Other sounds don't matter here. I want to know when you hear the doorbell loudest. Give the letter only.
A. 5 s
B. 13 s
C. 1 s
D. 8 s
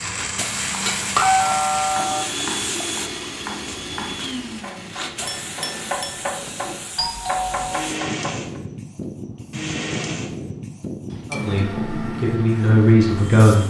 C.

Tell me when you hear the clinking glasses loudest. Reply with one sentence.
The loudest moment of the clinking glasses is at 1 second.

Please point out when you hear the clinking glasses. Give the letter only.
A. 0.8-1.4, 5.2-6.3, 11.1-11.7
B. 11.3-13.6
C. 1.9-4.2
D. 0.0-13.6
A.